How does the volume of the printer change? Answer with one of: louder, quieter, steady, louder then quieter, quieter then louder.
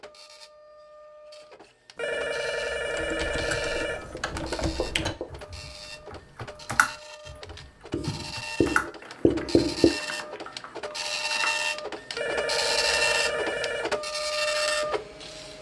louder.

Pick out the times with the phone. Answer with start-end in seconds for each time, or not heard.
1.9-4.2, 12.2-13.9.